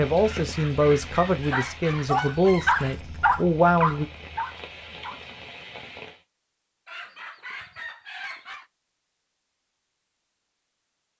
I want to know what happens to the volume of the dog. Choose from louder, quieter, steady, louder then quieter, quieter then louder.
louder then quieter.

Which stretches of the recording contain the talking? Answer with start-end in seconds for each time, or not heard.
0.0-4.0.